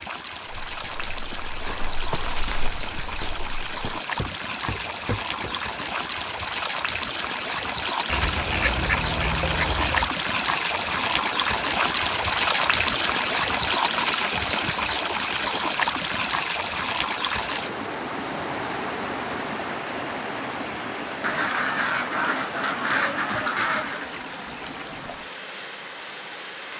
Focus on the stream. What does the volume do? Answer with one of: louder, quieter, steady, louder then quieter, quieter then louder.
louder then quieter.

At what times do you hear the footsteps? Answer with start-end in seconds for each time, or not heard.
0.5-5.8.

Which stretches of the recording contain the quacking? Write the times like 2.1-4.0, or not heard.
8.1-10.1, 21.2-24.1.